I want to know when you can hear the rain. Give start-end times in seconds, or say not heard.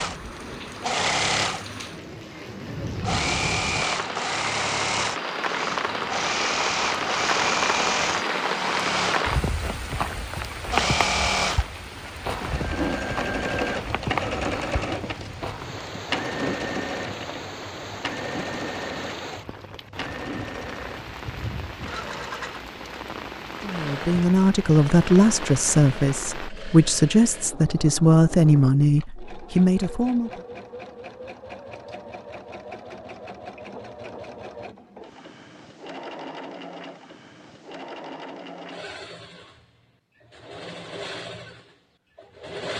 0.0-26.5.